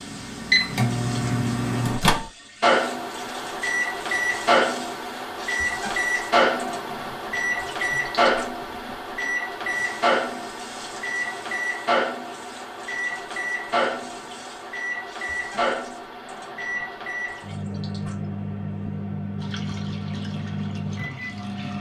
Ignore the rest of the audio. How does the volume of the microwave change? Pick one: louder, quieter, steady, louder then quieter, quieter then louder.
quieter.